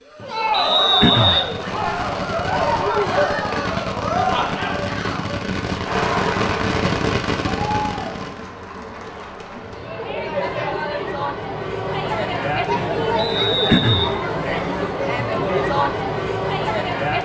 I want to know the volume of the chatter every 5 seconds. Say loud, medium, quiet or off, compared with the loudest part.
loud, medium, loud, loud.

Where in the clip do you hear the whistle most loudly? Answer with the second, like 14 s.
1 s.